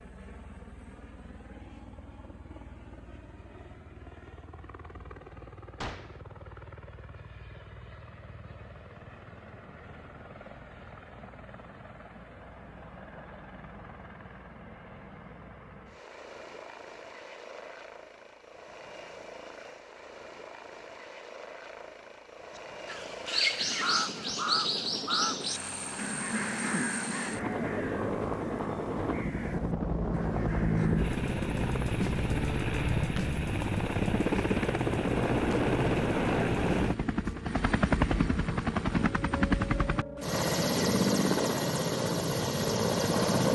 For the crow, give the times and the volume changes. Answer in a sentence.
You can hear the crow from 22.9 to 31.1 s, getting quieter.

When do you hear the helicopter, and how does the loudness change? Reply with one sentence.
The helicopter can be heard from 0.0 to 43.4 s, getting louder.